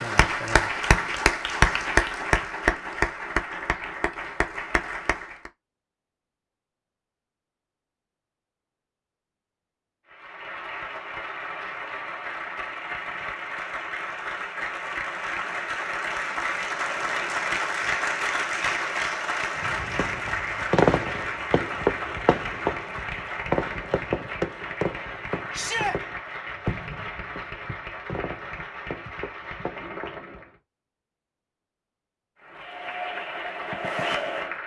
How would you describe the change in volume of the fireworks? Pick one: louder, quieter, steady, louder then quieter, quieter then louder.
quieter.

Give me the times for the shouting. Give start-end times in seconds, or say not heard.
25.5-25.9.